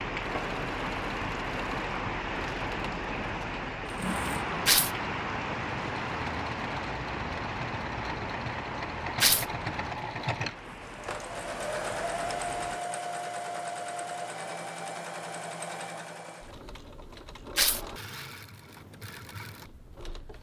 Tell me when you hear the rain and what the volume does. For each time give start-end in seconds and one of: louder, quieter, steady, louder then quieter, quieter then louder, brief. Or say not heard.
0.0-12.8 quieter.